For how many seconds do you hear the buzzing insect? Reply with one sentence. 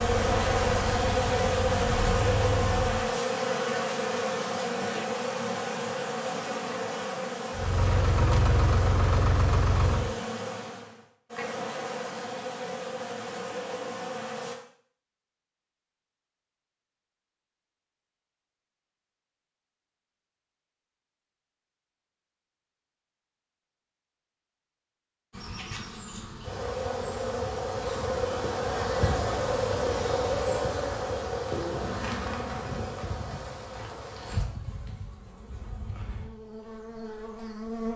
The buzzing insect can be heard for 27 seconds in total.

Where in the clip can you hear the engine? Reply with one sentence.
You can hear the engine from 0.0 to 3.1 s and from 7.5 to 10.2 s.